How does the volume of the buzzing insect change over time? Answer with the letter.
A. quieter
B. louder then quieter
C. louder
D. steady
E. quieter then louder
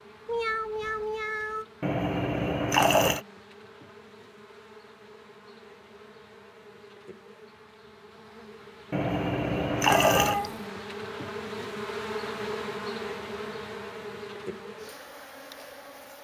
C.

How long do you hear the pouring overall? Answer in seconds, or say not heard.
3 s.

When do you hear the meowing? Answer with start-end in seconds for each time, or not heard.
0.2-1.6, 9.9-10.7.